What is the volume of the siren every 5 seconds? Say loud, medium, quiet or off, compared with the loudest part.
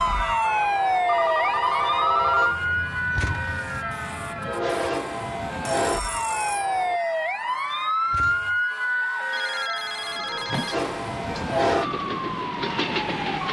loud, loud, medium.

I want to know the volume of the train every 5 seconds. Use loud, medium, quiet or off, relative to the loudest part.
medium, loud, loud.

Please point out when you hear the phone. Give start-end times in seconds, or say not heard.
1.1-2.6, 5.7-7.1, 9.3-11.6.